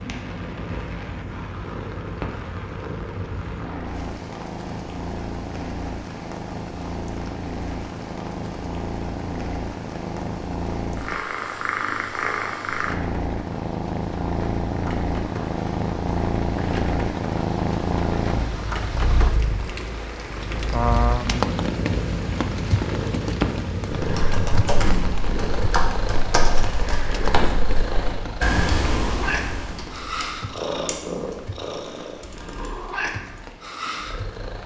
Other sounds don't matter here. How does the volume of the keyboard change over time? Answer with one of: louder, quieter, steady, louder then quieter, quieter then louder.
quieter.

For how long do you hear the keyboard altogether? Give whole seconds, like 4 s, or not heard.
10 s.